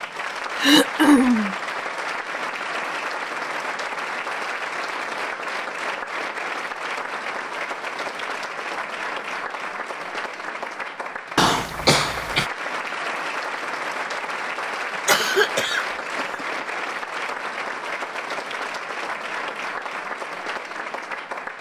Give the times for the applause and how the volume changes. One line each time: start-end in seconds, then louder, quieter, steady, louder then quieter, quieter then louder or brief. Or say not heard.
0.0-21.5 steady.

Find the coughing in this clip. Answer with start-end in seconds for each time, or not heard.
0.6-1.6, 11.3-12.5, 15.1-16.4.